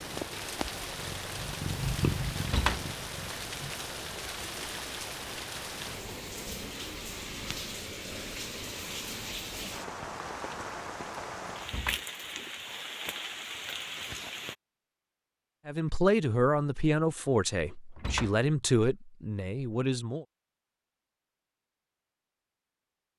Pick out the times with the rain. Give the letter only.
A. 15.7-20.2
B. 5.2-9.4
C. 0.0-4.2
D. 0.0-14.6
D.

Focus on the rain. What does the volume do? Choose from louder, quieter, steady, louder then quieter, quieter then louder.
steady.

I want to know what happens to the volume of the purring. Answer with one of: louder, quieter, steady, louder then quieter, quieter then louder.
louder then quieter.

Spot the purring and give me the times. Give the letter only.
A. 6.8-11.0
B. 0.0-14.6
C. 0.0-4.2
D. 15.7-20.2
C.